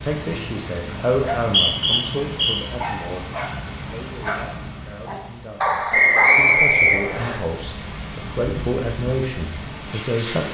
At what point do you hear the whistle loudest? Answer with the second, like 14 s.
6 s.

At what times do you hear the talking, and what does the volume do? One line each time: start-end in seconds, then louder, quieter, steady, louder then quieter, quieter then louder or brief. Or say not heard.
0.0-10.5 quieter then louder.